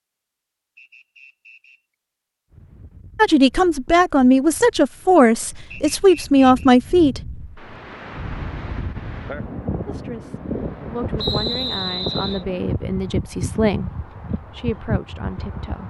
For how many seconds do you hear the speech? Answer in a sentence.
The speech can be heard for 10 seconds in total.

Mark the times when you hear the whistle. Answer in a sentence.
You can hear the whistle from 0.8 to 1.8 s, from 5.7 to 6.7 s and from 11.2 to 12.4 s.